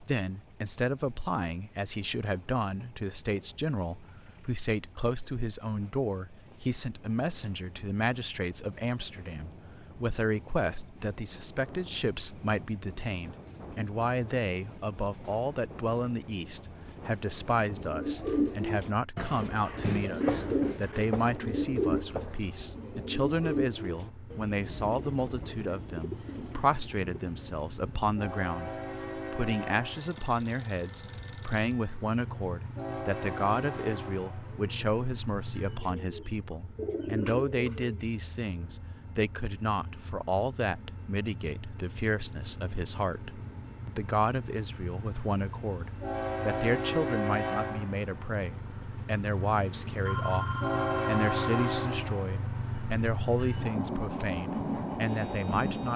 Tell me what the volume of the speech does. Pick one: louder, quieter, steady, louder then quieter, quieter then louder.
steady.